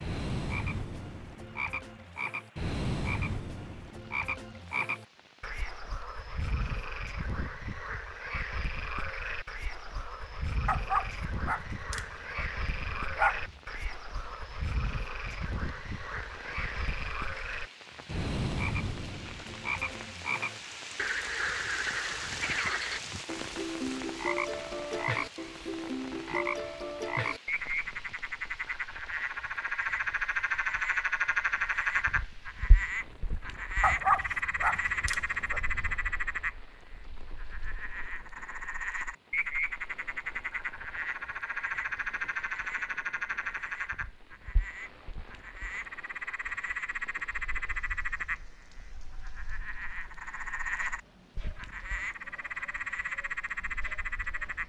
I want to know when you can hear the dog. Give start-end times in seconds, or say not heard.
10.7-13.6, 33.8-36.0.